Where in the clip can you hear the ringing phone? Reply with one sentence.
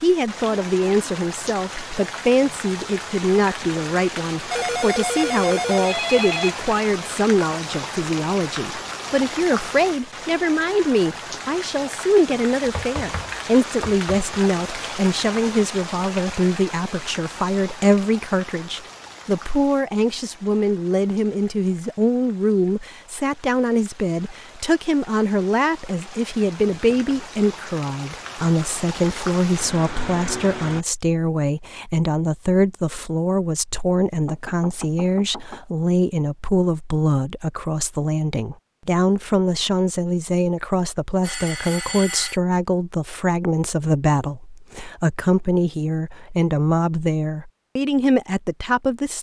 The ringing phone can be heard from 4.5 to 6.5 s and from 41.2 to 42.4 s.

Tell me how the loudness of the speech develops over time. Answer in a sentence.
The loudness of the speech stays about the same.